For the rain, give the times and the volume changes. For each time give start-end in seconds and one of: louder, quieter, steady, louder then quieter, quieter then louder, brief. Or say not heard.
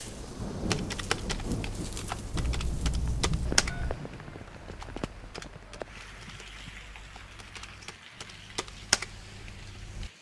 0.0-10.1 quieter.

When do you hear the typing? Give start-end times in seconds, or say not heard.
0.6-10.1.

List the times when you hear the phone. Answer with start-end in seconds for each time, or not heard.
2.3-4.0.